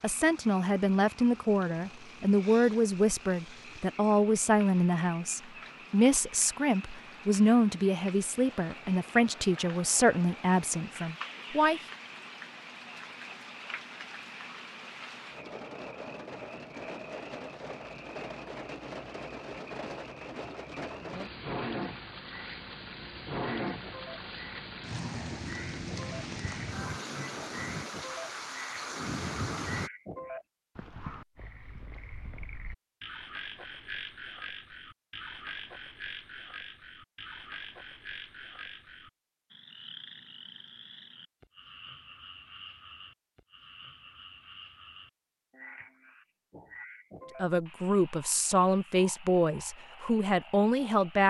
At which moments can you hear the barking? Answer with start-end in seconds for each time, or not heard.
not heard.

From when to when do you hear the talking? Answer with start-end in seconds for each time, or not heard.
0.0-11.8, 47.4-51.2.